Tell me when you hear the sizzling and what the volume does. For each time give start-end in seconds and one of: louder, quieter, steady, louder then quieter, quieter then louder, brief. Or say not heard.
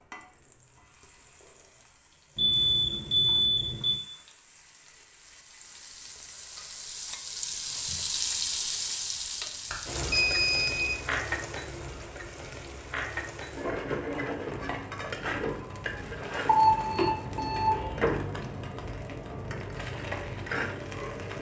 0.0-21.3 louder.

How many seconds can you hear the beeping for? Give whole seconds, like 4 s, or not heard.
4 s.